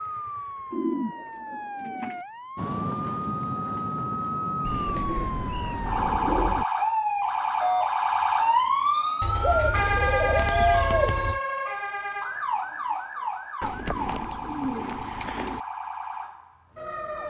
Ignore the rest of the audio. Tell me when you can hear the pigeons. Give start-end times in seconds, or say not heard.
0.7-2.2, 4.7-6.7, 9.2-11.4, 13.6-15.6.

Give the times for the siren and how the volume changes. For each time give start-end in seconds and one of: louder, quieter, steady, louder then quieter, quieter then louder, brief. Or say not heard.
0.0-17.2 louder then quieter.